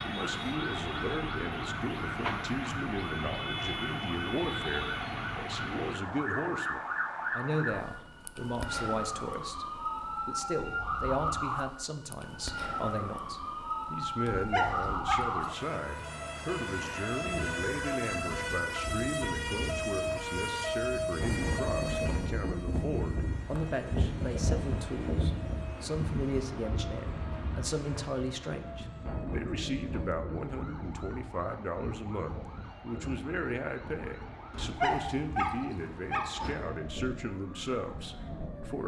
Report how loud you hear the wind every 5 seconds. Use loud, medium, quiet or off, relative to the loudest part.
off, off, off, medium, loud, loud, medium, medium.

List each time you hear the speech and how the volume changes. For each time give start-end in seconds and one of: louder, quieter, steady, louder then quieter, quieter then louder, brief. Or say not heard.
0.0-38.8 steady.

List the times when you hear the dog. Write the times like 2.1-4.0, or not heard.
14.2-15.6, 34.5-36.5.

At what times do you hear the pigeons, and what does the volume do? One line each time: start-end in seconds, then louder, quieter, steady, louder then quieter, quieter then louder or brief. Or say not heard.
not heard.